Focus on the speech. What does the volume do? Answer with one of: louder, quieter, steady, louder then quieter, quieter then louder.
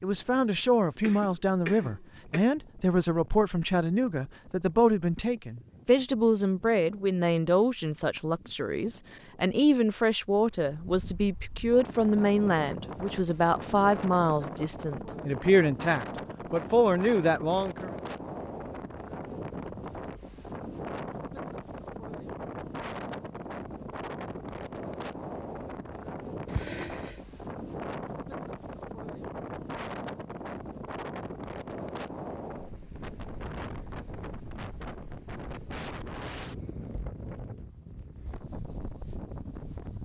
steady.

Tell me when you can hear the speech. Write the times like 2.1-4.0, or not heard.
0.0-17.9.